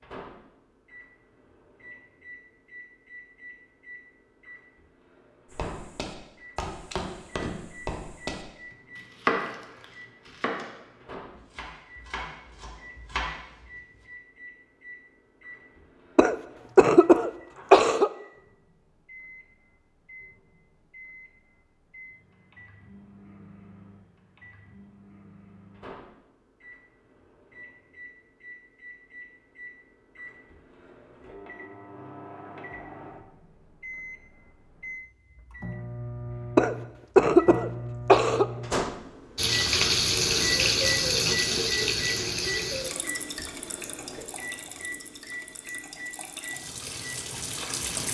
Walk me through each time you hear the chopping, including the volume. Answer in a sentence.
You can hear the chopping from 5.5 to 10.8 s, getting louder then quieter; and briefly from 11.3 to 13.7 s.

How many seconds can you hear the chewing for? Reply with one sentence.
The chewing can't be heard in this clip.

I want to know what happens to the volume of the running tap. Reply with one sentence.
The loudness of the running tap goes down, then up.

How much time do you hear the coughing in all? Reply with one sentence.
The coughing can be heard for 4 seconds in total.